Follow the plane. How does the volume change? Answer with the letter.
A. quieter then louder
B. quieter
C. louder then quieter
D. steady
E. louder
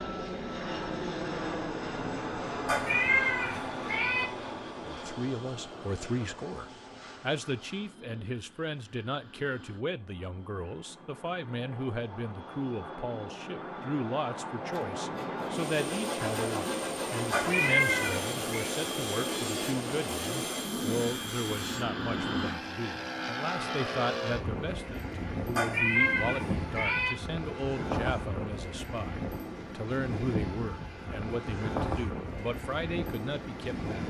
A.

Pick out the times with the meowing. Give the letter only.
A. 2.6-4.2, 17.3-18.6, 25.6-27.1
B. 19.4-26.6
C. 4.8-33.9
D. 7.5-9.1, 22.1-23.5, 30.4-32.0
A.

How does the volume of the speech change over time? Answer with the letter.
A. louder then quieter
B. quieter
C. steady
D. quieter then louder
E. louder
C.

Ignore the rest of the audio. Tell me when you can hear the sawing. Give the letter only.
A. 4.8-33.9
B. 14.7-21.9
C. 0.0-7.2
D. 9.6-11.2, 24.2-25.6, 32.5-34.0
B.